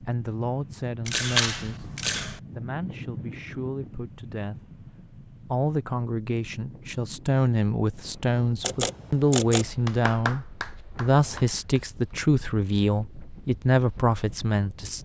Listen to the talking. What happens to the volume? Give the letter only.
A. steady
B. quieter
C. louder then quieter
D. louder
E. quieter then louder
D.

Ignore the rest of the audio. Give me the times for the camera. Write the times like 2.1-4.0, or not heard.
1.1-2.4, 8.6-9.8.